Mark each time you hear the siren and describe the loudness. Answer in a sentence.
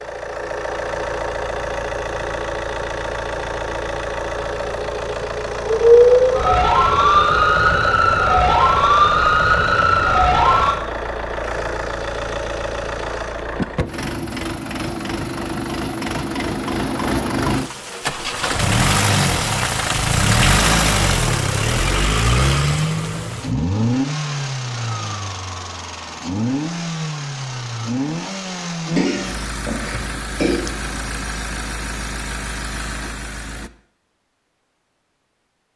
The siren can be heard from 5.7 to 10.8 s, at a steady volume.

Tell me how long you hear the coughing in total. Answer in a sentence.
You can hear the coughing for 2 seconds altogether.